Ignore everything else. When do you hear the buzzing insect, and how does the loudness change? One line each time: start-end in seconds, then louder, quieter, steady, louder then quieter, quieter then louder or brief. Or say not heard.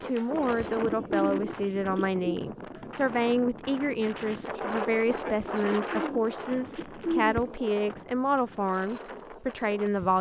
not heard.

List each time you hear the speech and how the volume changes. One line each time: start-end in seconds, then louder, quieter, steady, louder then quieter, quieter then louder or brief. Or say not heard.
0.0-10.1 steady.